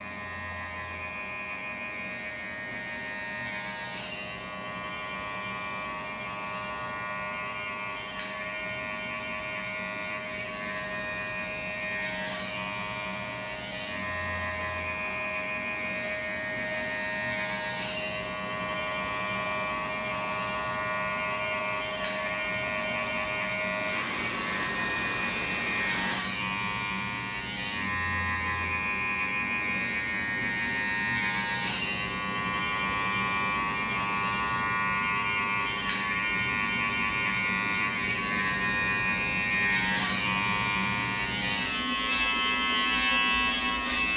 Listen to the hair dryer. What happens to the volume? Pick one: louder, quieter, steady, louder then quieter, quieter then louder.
louder.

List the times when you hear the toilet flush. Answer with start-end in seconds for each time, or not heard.
not heard.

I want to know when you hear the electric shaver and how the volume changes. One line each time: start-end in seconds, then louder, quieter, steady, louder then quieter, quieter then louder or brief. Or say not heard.
0.0-44.1 louder.